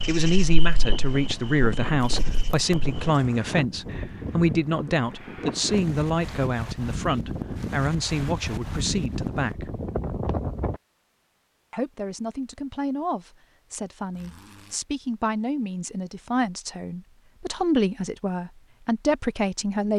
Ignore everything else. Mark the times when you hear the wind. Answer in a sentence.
The wind can be heard from 0.0 to 10.8 s.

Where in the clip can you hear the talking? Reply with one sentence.
The talking can be heard from 0.1 to 9.7 s and from 11.7 to 19.9 s.